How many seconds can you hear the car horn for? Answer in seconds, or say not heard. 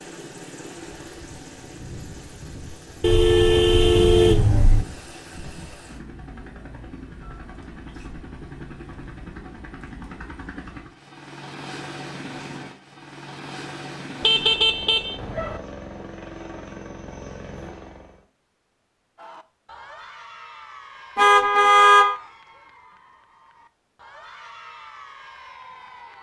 4 s.